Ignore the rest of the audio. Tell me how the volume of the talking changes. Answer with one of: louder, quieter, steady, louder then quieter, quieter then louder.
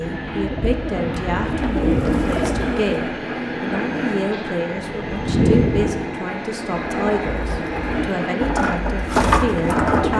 steady.